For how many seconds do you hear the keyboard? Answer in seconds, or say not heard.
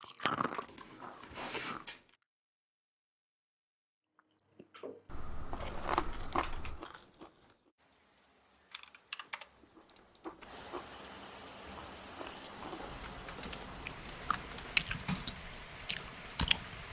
7 s.